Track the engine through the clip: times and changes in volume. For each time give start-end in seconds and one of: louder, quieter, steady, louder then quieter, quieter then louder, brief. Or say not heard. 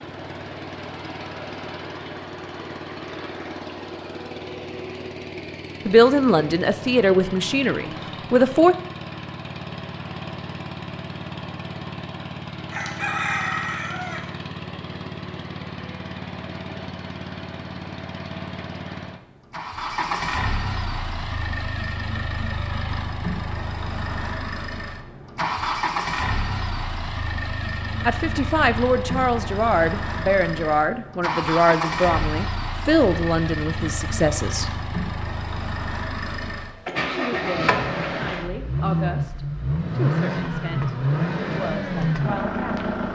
0.0-43.1 louder.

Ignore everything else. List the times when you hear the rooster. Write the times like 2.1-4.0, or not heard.
12.7-14.2.